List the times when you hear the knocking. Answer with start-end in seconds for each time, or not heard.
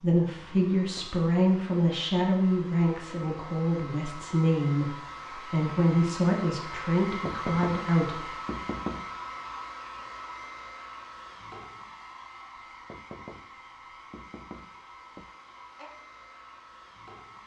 0.8-1.2, 7.0-9.2, 12.7-15.3.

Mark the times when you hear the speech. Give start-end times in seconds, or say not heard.
0.0-8.3.